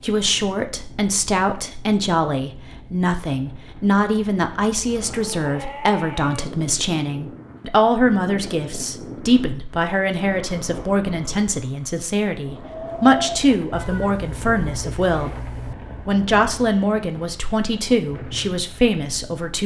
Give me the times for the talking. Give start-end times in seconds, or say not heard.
0.0-15.4, 16.1-19.6.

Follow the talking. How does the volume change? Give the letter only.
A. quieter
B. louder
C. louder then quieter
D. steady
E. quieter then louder
D.